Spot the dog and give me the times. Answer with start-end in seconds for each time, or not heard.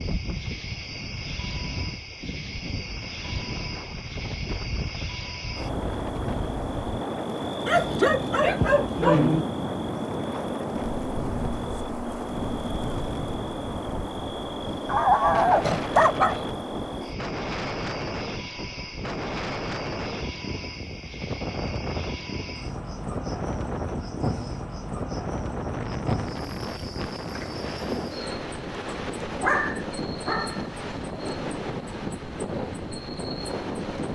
7.7-9.4, 14.8-16.4, 29.4-30.7.